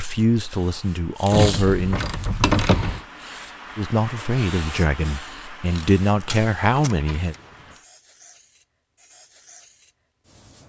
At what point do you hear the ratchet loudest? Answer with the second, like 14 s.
3 s.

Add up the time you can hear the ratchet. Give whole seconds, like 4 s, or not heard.
4 s.